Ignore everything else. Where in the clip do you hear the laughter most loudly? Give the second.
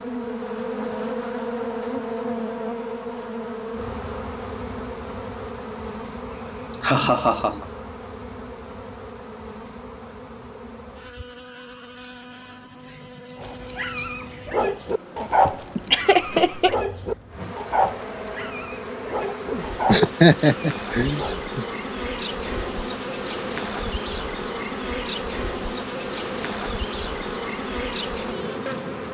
20 s.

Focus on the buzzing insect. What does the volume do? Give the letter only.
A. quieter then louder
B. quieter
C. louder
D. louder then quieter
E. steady
A.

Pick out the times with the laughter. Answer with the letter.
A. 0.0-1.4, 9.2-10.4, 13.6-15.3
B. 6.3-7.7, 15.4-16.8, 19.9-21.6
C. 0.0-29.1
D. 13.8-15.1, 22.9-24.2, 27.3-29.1
B.